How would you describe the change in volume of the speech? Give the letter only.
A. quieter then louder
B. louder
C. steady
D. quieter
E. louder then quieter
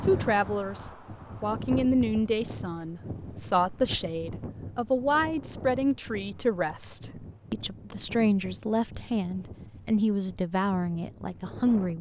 C.